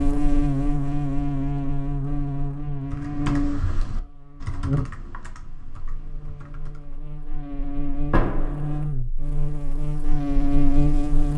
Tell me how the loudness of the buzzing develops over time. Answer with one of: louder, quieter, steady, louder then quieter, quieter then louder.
quieter then louder.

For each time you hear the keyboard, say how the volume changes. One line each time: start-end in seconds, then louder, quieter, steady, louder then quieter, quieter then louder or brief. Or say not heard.
2.9-7.0 quieter.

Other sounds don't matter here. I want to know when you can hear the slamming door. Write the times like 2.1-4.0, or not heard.
8.0-8.8.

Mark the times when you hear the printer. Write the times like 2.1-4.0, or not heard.
not heard.